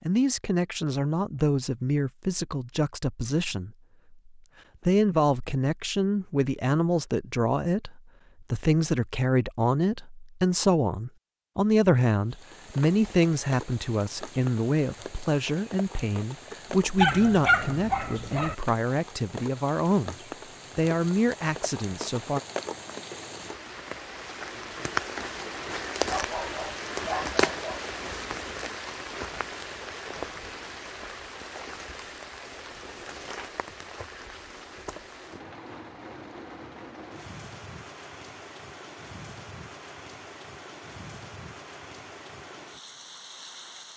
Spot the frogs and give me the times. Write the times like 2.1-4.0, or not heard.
not heard.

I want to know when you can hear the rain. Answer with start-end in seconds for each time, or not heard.
12.2-43.9.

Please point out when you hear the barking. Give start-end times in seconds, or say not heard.
16.9-18.6, 26.1-27.9.